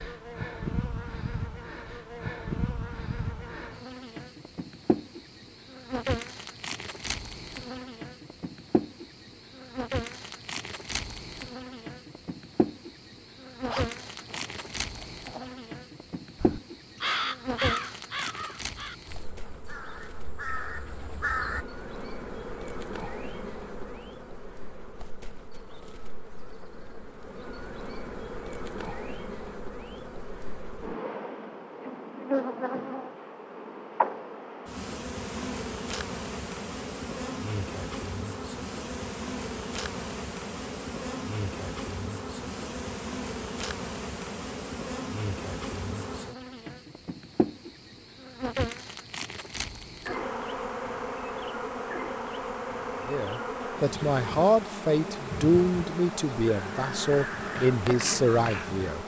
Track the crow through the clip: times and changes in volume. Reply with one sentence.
You can hear the crow from 16.4 to 21.6 s, getting quieter then louder; and briefly from 56.5 to 58.9 s.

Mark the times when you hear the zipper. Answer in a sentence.
You can hear the zipper from 13.7 to 15.6 s.